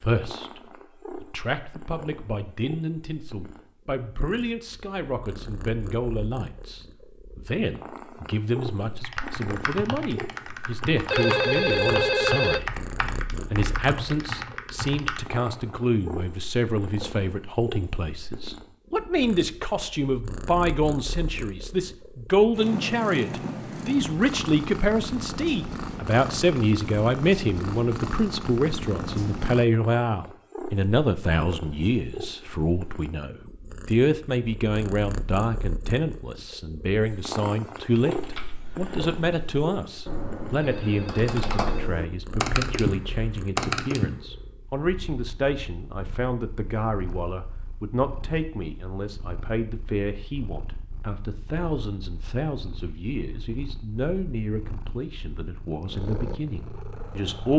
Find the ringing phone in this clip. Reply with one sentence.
You can hear the ringing phone from 11.1 to 12.6 s and from 40.5 to 41.9 s.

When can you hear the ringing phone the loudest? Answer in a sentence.
The loudest moment of the ringing phone is at 12 seconds.